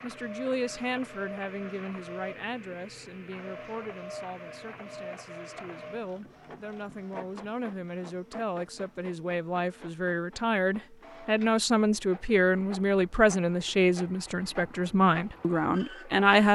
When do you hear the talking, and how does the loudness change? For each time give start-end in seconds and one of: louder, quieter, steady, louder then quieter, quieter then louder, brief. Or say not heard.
0.0-16.5 quieter then louder.